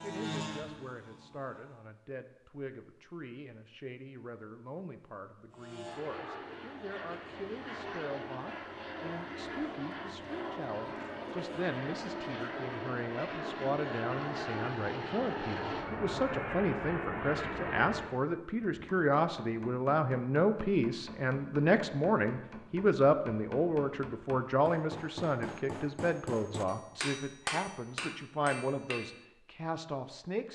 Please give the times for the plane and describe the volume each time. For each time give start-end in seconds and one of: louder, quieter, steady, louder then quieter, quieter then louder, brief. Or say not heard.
0.0-1.9 brief
5.5-18.1 louder.